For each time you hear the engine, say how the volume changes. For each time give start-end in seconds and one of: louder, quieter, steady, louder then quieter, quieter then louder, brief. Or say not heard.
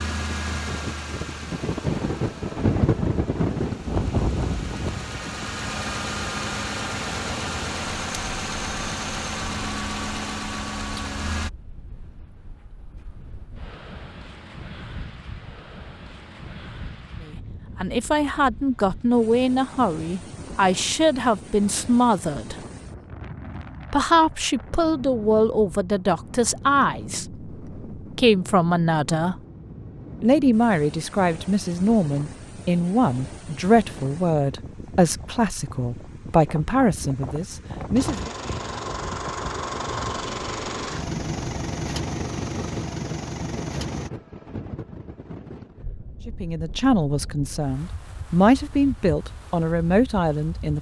0.0-11.5 quieter then louder
38.0-44.1 steady.